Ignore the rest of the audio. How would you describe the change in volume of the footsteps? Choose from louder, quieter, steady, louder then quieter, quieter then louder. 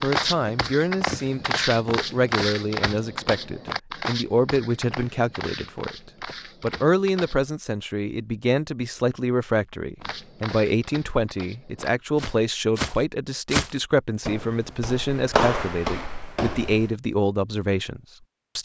quieter then louder.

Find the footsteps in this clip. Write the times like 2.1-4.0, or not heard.
0.0-7.5, 10.0-16.9.